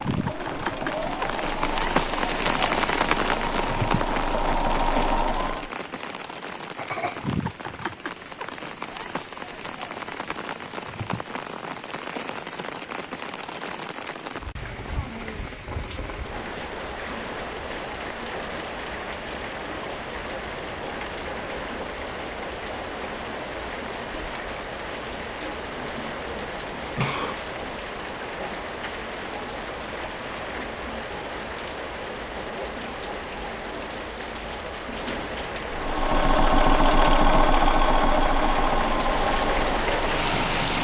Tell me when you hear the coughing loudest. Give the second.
27 s.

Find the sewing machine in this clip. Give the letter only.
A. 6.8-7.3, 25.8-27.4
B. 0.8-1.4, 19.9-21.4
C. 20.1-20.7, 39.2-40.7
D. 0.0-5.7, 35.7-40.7
D.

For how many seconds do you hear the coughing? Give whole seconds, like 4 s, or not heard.
2 s.